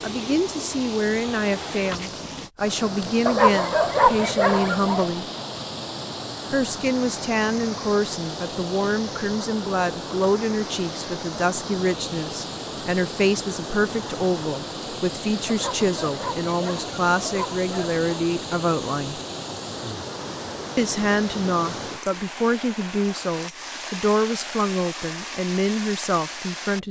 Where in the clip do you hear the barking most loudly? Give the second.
4 s.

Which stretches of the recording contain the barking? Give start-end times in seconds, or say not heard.
3.2-5.1, 15.4-18.3.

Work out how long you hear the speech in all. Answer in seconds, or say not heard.
24 s.